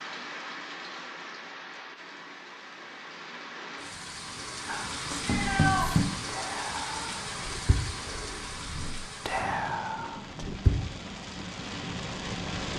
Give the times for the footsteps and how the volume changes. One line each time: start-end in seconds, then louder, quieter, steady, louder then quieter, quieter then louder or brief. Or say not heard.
not heard.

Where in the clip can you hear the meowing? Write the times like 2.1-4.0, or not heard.
5.2-6.2.